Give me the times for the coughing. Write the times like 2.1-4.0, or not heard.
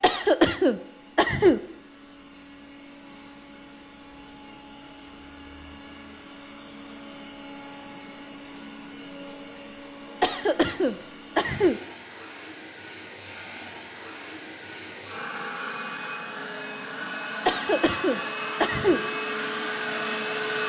0.0-1.6, 10.2-11.8, 17.4-19.1.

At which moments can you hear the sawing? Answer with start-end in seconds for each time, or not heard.
not heard.